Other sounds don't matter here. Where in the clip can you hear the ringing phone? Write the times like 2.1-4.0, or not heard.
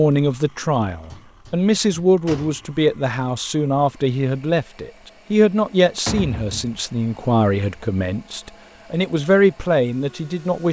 not heard.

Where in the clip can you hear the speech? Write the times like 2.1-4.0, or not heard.
0.0-10.6.